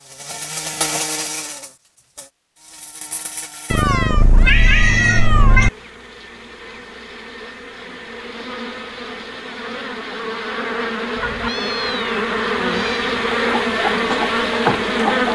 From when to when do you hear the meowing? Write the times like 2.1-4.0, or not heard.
3.7-5.7, 11.2-13.2.